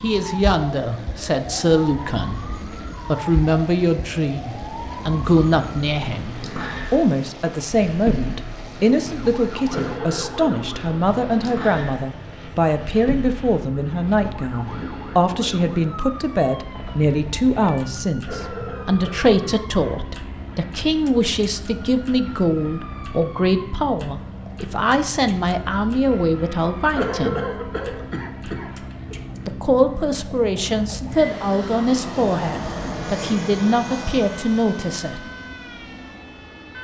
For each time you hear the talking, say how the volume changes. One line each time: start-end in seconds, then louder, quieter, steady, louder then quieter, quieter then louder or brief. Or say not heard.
0.0-27.4 steady
29.4-35.3 steady.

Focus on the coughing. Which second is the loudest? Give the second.
27 s.